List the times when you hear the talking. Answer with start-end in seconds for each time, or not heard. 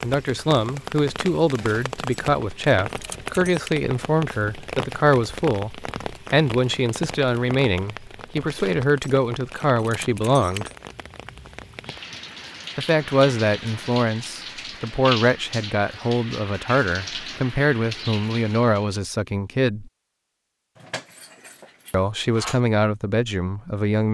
0.0-10.7, 12.8-19.9, 21.9-24.1.